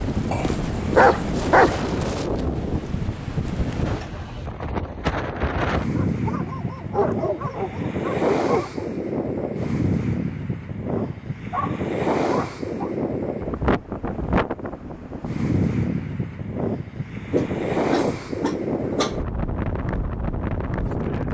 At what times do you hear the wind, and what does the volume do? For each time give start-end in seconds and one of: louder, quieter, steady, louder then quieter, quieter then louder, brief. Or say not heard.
0.0-21.2 steady.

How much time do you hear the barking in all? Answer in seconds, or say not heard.
8 s.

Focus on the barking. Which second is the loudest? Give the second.
1 s.